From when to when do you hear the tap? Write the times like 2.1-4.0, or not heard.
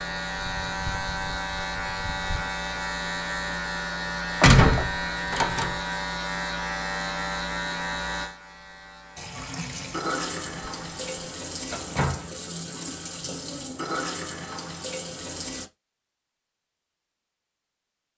9.2-15.7.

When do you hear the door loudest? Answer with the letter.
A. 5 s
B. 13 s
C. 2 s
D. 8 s
A.